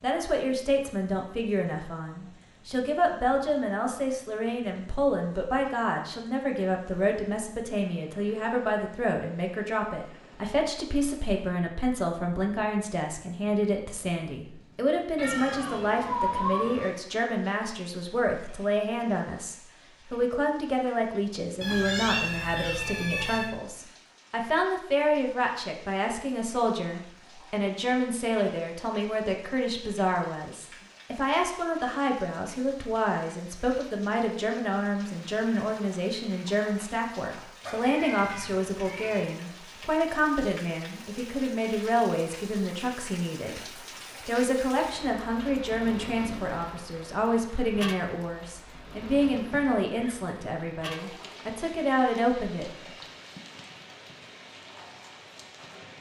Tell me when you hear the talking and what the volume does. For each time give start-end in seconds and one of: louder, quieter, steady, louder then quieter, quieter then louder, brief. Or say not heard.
0.0-52.7 steady.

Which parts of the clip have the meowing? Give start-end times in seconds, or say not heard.
15.2-16.9, 21.6-23.5, 37.6-39.2.